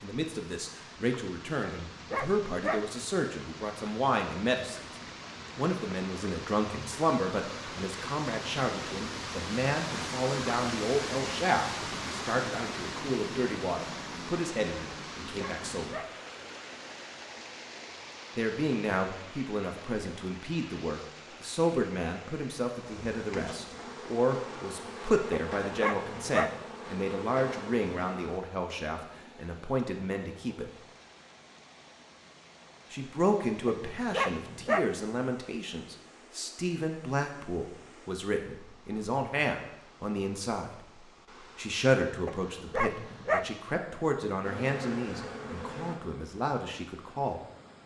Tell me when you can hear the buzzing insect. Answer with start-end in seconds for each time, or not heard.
22.9-28.4, 44.4-46.0.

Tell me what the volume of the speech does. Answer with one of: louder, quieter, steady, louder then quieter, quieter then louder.
steady.